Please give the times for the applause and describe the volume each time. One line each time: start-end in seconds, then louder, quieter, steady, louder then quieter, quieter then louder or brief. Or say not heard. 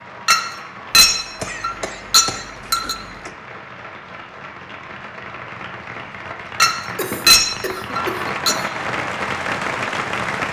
0.0-10.4 louder.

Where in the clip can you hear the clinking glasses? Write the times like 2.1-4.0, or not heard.
0.2-3.0, 6.6-8.6.